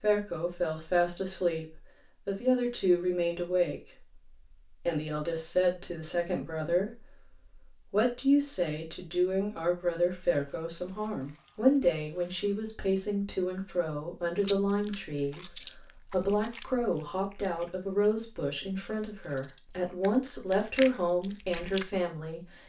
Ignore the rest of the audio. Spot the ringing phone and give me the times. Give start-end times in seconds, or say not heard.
not heard.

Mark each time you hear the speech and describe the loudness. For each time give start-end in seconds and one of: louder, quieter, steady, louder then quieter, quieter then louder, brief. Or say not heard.
0.0-22.6 steady.